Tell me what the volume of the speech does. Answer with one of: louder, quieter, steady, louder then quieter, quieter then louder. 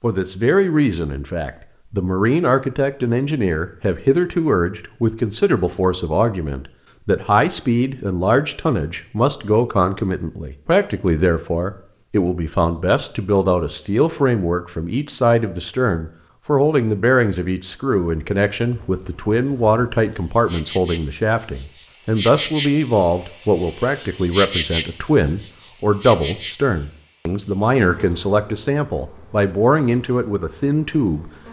steady.